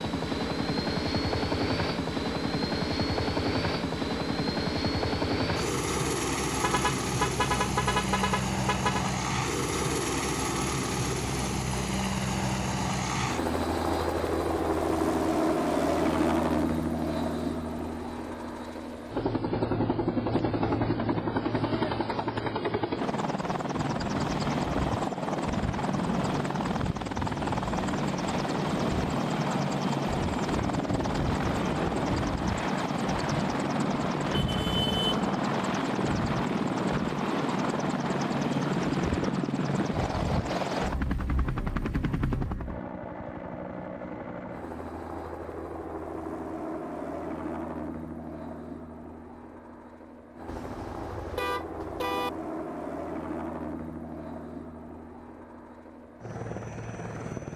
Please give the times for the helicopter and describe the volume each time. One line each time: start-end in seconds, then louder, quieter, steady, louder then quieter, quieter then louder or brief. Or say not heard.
0.0-57.5 quieter.